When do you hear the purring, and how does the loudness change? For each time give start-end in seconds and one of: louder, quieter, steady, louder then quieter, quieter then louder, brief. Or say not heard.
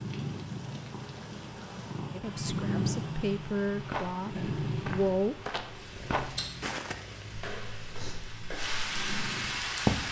0.0-9.9 louder then quieter.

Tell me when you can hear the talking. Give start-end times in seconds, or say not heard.
2.1-5.5.